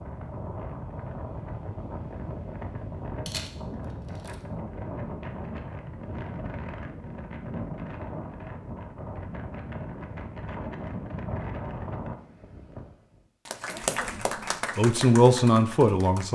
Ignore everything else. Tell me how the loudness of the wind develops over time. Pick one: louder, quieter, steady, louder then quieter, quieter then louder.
steady.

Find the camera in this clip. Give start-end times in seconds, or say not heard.
3.2-4.3.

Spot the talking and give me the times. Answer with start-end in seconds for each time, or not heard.
14.8-16.2.